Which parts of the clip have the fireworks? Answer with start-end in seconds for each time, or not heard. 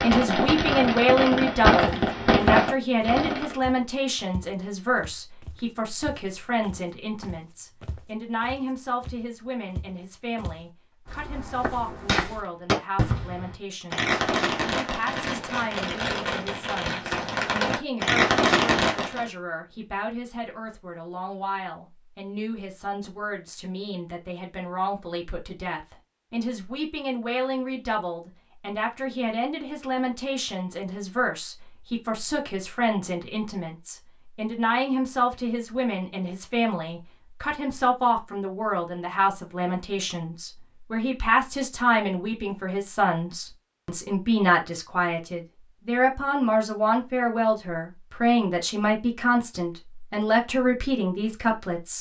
0.0-3.5, 11.2-19.2.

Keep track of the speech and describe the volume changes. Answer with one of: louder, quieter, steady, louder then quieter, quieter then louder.
quieter then louder.